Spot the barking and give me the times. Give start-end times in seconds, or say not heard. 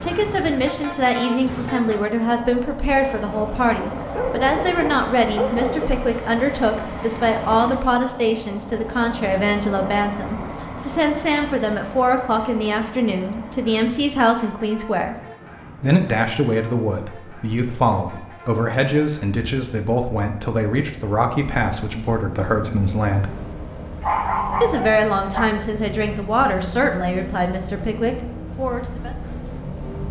4.1-5.9, 24.0-25.5.